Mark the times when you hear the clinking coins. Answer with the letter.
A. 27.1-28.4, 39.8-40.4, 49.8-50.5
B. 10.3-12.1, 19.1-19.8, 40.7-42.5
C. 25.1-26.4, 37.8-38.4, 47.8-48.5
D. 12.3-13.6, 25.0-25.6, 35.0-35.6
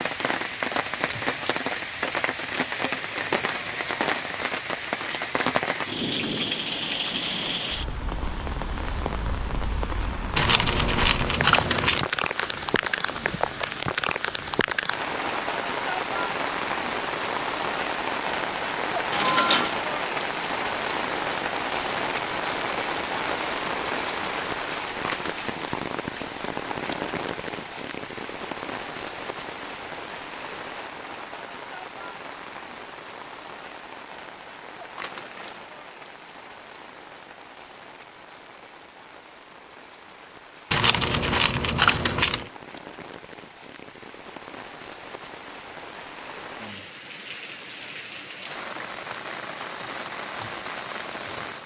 B.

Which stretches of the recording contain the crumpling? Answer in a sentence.
You can hear the crumpling from 12.3 to 13.6 s, from 25.0 to 25.6 s and from 35.0 to 35.6 s.